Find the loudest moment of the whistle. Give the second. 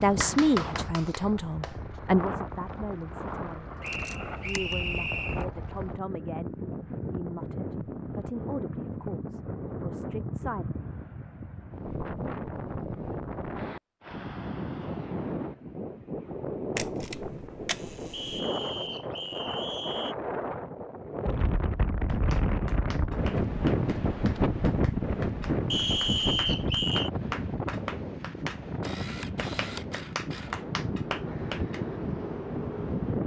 26 s.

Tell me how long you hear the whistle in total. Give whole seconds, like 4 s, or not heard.
5 s.